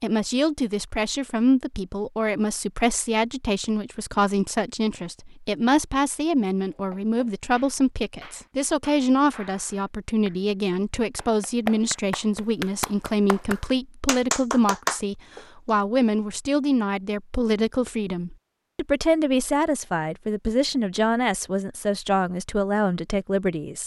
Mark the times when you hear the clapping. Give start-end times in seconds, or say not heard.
6.7-15.8.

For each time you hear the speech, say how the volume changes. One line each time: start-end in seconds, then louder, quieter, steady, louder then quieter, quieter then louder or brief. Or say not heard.
0.0-23.8 steady.